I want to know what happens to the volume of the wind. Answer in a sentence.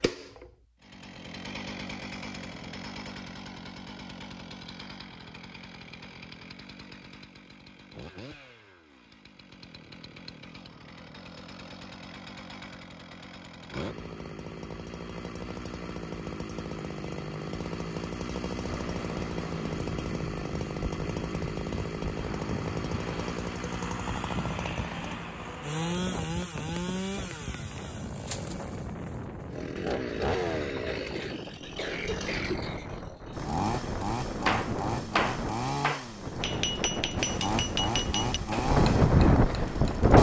The loudness of the wind goes up.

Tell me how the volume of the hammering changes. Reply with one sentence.
The loudness of the hammering goes down.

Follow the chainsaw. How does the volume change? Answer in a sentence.
The volume of the chainsaw goes up.